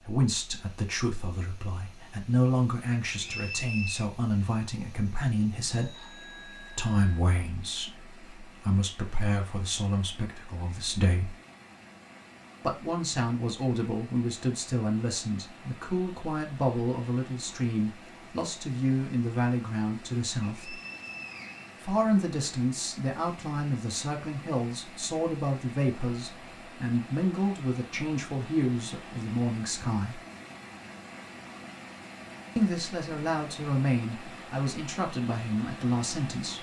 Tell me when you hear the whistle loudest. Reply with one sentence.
The volume of the whistle peaks at 4 seconds.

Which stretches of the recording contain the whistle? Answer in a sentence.
The whistle can be heard from 3.0 to 4.1 s and from 20.4 to 21.7 s.